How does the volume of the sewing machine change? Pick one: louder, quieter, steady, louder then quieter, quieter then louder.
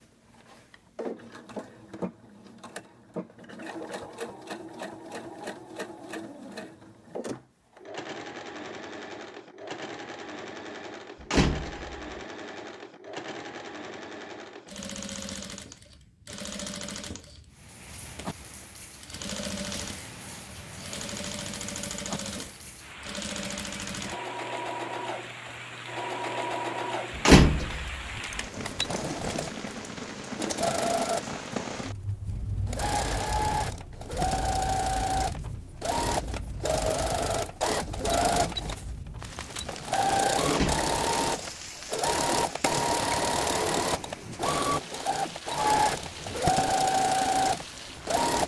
louder.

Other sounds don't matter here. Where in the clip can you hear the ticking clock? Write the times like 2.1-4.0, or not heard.
not heard.